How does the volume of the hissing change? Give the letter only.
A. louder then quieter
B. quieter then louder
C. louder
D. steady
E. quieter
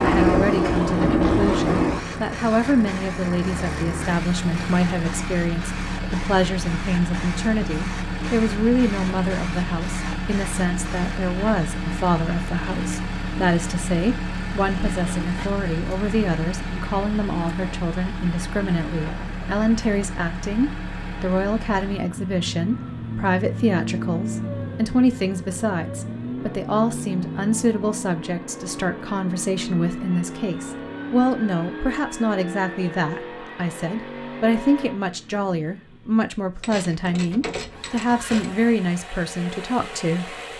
E.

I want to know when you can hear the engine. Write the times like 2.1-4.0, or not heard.
0.1-40.5.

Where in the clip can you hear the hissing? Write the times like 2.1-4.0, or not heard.
0.0-11.2.